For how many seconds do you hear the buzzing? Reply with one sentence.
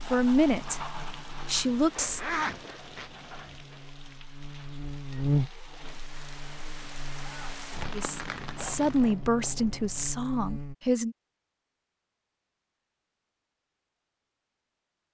You can hear the buzzing for 11 seconds altogether.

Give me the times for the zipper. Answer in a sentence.
You can hear the zipper from 1.9 to 3.1 s and from 8.3 to 10.2 s.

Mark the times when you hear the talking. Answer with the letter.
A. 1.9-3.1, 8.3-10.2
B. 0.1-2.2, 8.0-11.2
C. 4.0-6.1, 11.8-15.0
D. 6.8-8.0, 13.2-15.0
B.